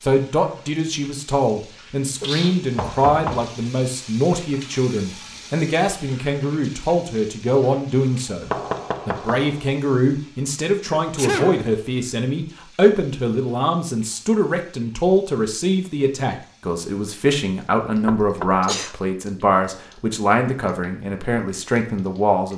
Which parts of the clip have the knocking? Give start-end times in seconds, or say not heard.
2.8-3.5, 8.4-9.7, 18.1-18.6.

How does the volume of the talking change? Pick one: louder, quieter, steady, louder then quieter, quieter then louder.
steady.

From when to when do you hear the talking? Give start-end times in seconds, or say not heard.
0.0-22.5.